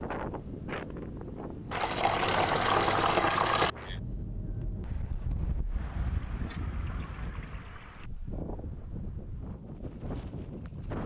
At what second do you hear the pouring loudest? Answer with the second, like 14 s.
3 s.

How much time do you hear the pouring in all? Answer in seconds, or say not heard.
4 s.